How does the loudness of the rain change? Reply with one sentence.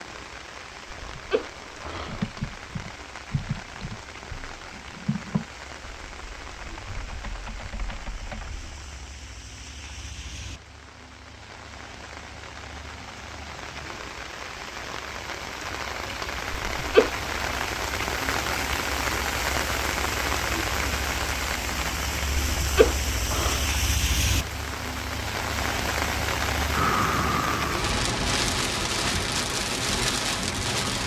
The loudness of the rain goes up.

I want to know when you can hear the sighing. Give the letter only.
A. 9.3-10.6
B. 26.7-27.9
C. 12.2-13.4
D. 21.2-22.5
B.